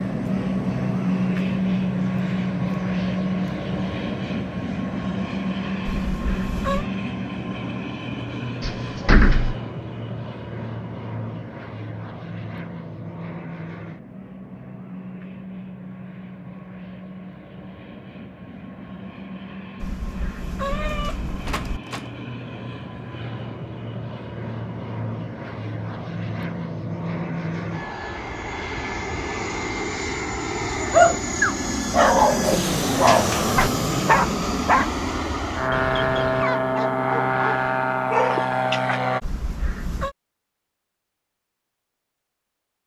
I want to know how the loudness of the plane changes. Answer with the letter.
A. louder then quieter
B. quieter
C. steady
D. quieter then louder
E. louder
D.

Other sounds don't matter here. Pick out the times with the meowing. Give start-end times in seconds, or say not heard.
5.8-6.9, 19.8-21.8, 39.2-40.1.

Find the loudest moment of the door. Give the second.
9 s.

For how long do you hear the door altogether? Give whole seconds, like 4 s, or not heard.
3 s.